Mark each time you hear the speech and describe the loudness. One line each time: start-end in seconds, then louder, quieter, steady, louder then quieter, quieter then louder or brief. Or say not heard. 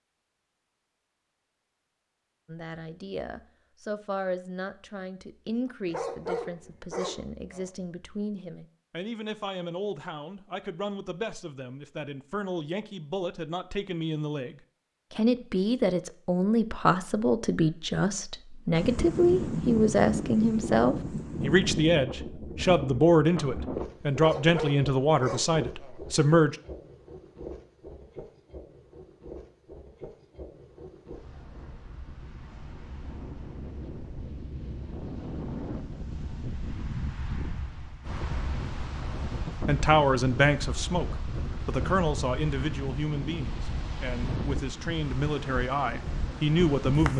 2.5-26.6 louder
39.6-47.1 quieter then louder.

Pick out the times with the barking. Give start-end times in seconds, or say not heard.
5.8-7.7, 24.1-26.0.